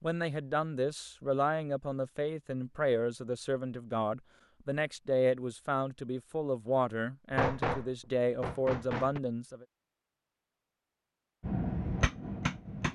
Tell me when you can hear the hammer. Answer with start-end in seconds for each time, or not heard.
7.3-9.2, 11.4-12.9.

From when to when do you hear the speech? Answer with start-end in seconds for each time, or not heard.
0.0-9.7.